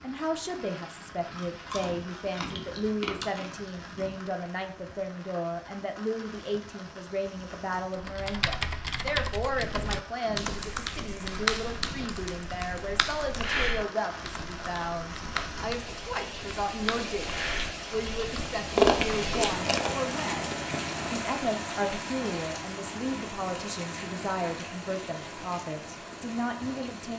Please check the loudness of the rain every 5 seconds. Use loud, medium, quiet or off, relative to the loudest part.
medium, medium, medium, loud, loud, medium.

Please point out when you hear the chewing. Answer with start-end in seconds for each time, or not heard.
1.4-3.5, 18.4-21.3.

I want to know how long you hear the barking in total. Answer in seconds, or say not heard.
not heard.